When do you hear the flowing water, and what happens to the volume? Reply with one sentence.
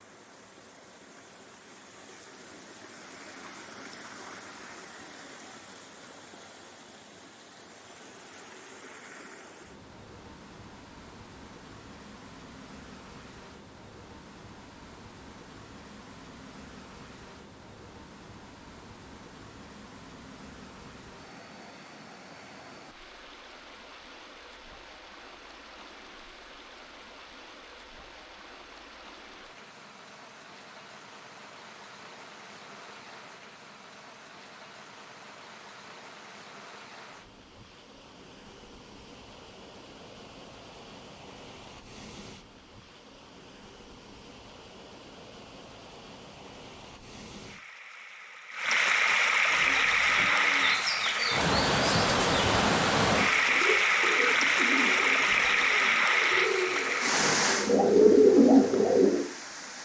The flowing water can be heard from 0.0 to 59.8 s, getting louder.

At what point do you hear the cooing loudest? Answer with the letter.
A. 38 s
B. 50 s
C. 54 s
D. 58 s
D.